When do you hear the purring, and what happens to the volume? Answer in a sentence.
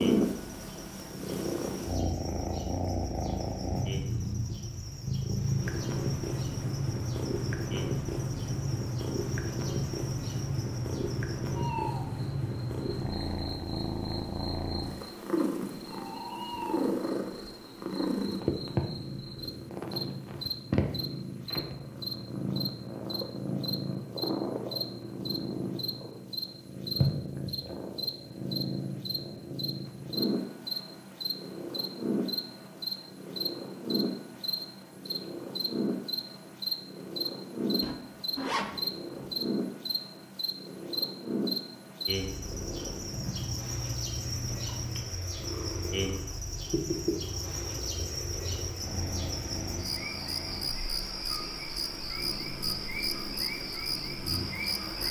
The purring can be heard from 0.0 to 55.0 s, getting quieter.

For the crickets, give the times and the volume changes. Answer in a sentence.
You can hear the crickets from 0.0 to 55.0 s, getting louder.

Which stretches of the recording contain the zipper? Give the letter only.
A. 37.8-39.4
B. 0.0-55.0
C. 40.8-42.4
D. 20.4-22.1
A.